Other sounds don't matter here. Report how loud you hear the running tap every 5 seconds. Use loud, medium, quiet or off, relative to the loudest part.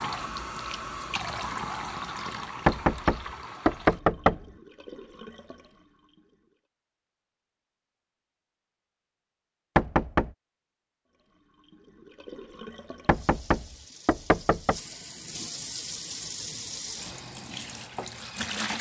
loud, quiet, medium, loud.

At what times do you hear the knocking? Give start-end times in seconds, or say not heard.
2.6-4.4, 9.8-10.3, 13.1-14.8.